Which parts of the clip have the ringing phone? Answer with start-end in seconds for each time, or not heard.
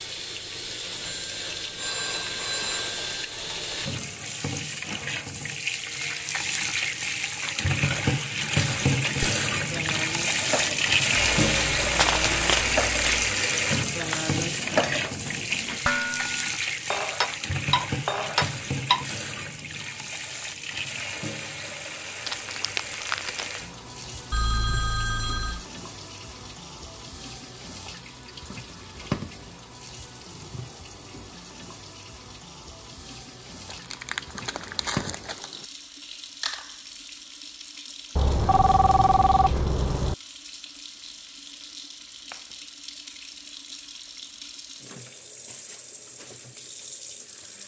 1.0-3.0, 24.3-25.6, 38.1-40.1.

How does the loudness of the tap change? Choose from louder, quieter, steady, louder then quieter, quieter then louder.
quieter.